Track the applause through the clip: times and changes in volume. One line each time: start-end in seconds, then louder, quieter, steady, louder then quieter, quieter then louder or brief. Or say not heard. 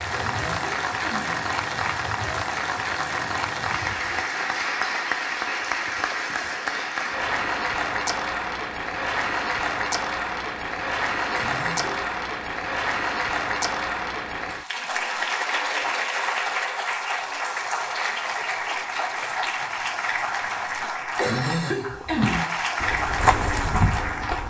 0.0-24.4 steady.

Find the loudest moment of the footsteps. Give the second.
23 s.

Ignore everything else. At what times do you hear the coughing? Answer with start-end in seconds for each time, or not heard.
0.1-1.4, 11.3-12.1, 21.1-22.6.